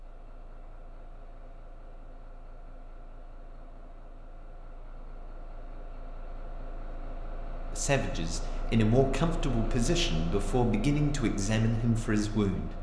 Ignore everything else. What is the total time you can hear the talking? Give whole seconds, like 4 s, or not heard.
5 s.